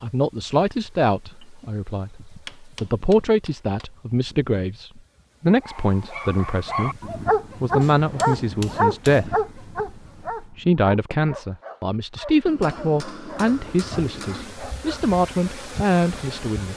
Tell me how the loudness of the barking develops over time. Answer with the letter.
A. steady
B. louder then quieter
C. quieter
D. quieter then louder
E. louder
C.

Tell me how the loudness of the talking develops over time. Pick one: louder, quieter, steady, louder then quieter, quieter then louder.
steady.